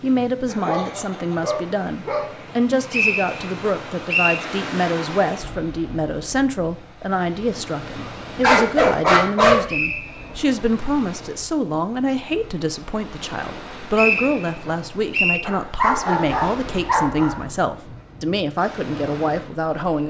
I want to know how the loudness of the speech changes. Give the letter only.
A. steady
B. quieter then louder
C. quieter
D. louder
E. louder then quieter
A.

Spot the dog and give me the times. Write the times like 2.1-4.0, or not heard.
0.5-2.3, 8.4-9.7, 15.4-17.4.